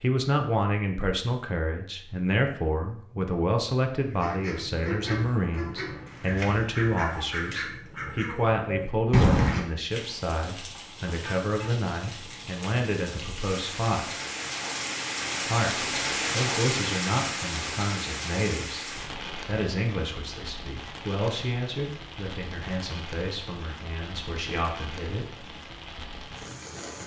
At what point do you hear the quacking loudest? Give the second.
9 s.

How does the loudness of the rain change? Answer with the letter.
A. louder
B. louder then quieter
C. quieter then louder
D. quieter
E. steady
B.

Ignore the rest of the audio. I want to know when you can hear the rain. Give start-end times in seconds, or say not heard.
9.8-27.0.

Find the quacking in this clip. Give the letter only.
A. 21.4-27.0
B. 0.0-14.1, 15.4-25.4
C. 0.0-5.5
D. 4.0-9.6
D.